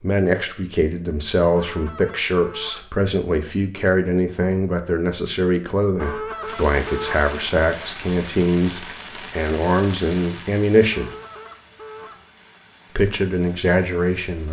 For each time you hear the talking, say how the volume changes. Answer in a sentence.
The talking can be heard from 0.0 to 11.1 s, at a steady volume; and briefly from 12.9 to 14.4 s.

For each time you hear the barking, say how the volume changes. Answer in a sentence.
You can't hear the barking here.